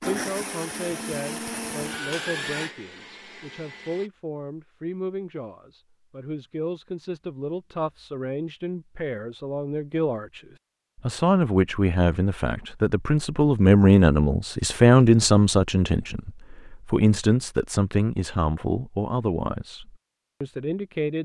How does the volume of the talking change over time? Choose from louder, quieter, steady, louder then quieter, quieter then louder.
louder then quieter.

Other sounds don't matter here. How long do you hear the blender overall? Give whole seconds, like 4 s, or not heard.
4 s.